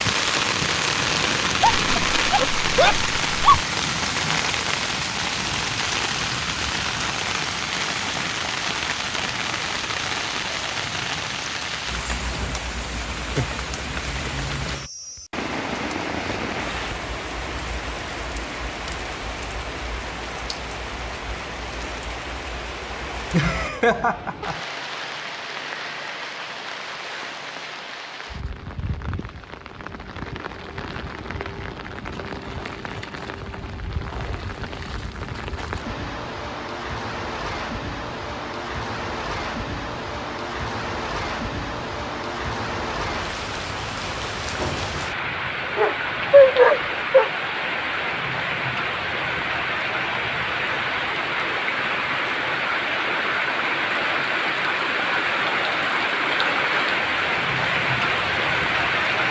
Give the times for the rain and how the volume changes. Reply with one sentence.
You can hear the rain from 0.0 to 59.2 s, getting quieter then louder.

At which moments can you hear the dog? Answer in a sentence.
The dog can be heard from 1.6 to 3.6 s and from 45.8 to 47.3 s.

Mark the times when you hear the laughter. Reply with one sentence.
The laughter can be heard from 23.3 to 24.6 s.